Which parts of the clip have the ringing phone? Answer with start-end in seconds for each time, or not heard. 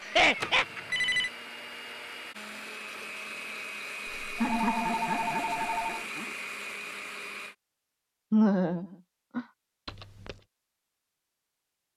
0.4-1.3, 4.2-6.0, 9.8-10.4.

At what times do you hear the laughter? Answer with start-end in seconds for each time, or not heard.
0.0-0.7, 4.4-6.2, 8.3-9.4.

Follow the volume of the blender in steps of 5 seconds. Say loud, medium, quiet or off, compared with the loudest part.
loud, loud, off.